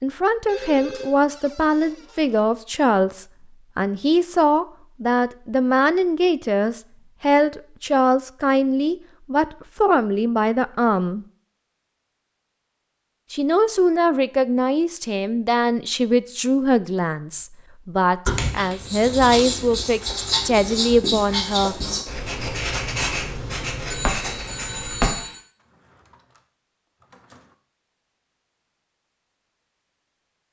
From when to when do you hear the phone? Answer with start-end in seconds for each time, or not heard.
0.5-1.1, 23.9-25.4.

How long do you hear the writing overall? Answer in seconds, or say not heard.
7 s.